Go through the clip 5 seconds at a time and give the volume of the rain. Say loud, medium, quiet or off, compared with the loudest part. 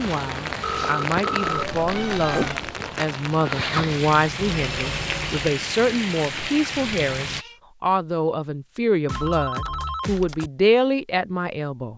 loud, loud, off.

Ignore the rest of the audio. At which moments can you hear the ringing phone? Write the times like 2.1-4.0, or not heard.
0.6-1.6, 4.3-5.5, 9.1-10.5.